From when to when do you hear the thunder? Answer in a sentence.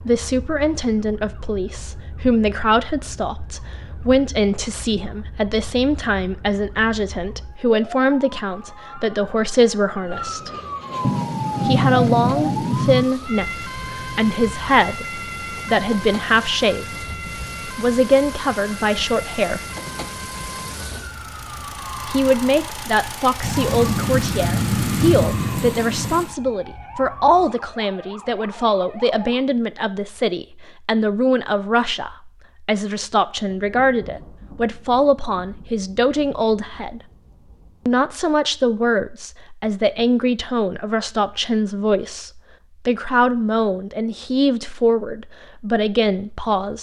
The thunder can be heard from 11.0 to 13.1 s, from 23.4 to 26.4 s and from 33.5 to 38.0 s.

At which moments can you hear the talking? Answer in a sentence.
You can hear the talking from 0.0 to 10.5 s, from 11.7 to 17.1 s, from 17.8 to 19.6 s, from 22.1 to 37.0 s and from 37.9 to 46.7 s.